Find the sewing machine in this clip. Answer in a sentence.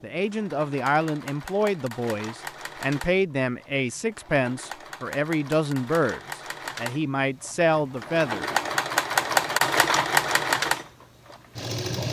The sewing machine can be heard from 0.0 to 12.0 s.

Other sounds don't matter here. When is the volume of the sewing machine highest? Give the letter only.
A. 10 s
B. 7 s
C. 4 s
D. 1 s
A.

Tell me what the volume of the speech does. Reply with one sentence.
The volume of the speech stays about the same.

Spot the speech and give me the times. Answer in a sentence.
You can hear the speech from 0.0 to 8.5 s.